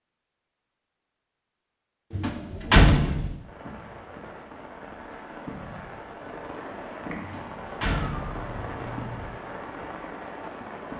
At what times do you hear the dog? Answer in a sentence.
The dog can't be heard in this clip.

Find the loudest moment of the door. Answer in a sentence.
The loudest moment of the door is at 3 seconds.